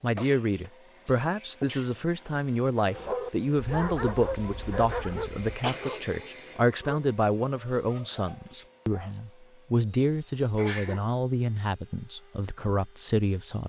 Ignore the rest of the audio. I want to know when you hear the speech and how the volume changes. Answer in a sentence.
You can hear the speech from 0.0 to 13.6 s, at a steady volume.